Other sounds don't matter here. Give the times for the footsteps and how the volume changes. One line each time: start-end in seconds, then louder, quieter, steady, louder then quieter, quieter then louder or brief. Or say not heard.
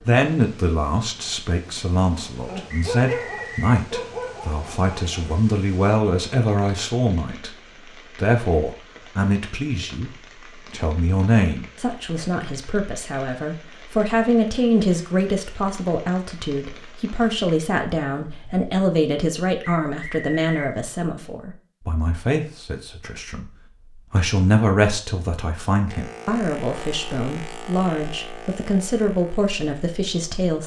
not heard.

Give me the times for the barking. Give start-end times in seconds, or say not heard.
2.5-5.3.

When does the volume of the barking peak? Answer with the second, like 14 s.
3 s.